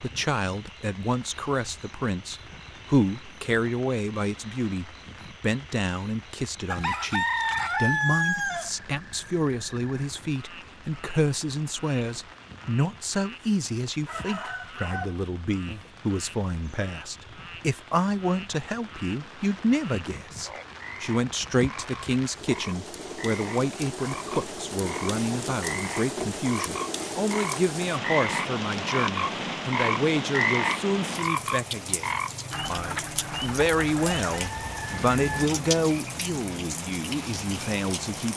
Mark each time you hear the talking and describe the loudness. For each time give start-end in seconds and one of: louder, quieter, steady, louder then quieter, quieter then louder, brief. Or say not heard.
0.0-38.3 steady.